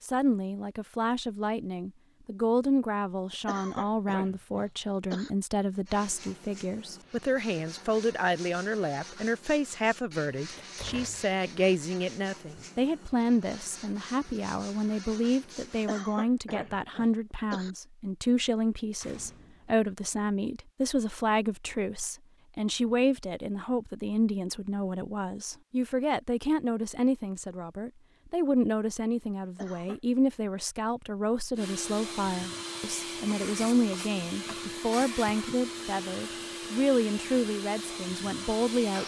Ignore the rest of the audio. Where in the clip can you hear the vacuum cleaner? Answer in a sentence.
The vacuum cleaner can be heard from 31.6 to 39.0 s.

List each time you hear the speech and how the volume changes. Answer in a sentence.
The speech can be heard from 0.0 to 39.0 s, at a steady volume.